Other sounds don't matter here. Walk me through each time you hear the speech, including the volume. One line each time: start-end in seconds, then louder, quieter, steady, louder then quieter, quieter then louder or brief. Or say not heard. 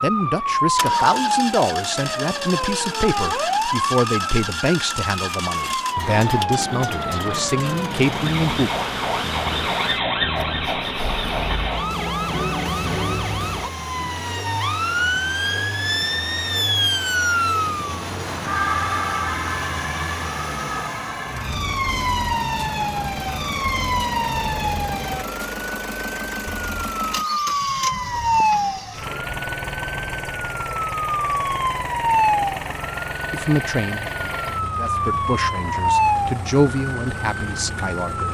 0.0-8.7 steady
33.3-38.2 louder then quieter.